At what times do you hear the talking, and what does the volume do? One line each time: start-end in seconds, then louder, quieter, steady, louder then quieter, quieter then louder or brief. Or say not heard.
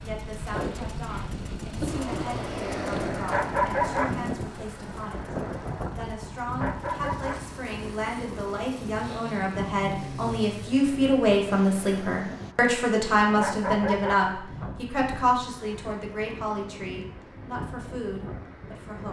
0.0-19.0 louder then quieter.